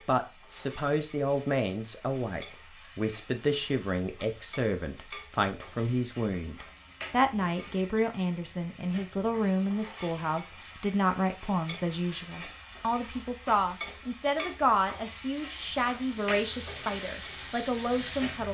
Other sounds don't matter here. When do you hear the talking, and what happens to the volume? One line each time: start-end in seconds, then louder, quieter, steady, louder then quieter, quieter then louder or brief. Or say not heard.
0.1-18.5 steady.